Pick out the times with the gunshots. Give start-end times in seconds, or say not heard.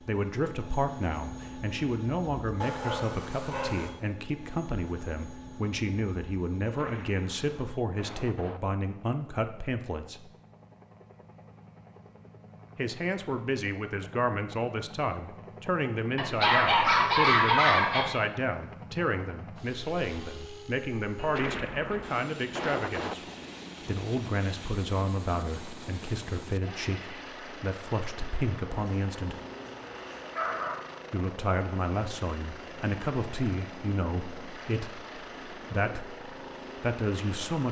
6.6-8.6, 21.1-23.1.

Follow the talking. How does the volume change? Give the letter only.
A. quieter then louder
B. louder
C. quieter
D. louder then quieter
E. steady
E.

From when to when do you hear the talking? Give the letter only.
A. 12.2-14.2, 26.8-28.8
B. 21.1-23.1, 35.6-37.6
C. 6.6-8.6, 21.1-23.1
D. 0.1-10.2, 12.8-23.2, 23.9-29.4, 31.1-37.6
D.